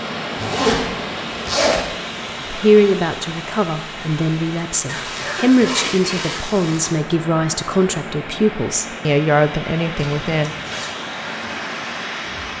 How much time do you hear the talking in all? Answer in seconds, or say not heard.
8 s.